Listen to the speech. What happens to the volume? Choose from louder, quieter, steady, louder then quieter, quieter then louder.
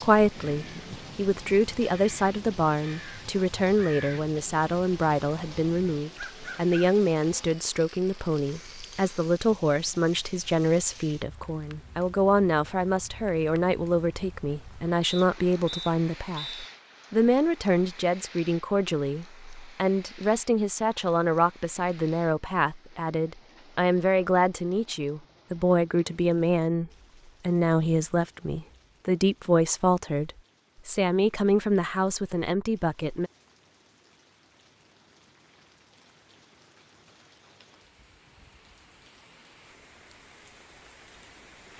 steady.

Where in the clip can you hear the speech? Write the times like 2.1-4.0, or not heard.
0.0-33.3.